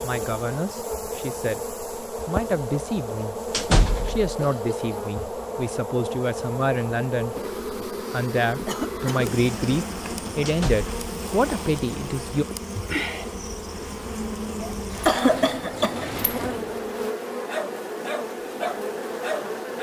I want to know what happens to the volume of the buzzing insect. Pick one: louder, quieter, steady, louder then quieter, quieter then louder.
steady.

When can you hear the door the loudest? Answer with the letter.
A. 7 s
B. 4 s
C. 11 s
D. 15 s
B.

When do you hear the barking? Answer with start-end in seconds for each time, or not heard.
17.4-19.7.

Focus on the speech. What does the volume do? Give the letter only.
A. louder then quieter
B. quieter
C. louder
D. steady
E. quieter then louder
C.